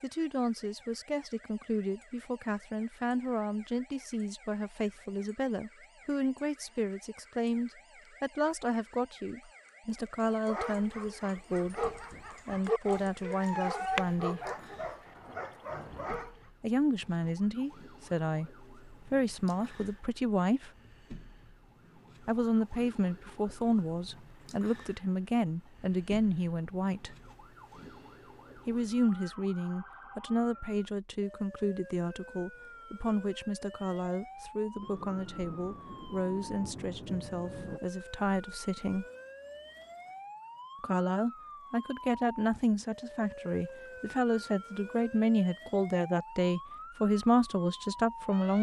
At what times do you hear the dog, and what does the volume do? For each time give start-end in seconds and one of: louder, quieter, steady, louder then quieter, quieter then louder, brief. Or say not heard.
10.2-16.4 louder then quieter.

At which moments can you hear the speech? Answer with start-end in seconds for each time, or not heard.
0.0-11.8, 12.4-14.5, 16.6-20.7, 22.2-27.1, 28.6-39.0, 40.8-48.5.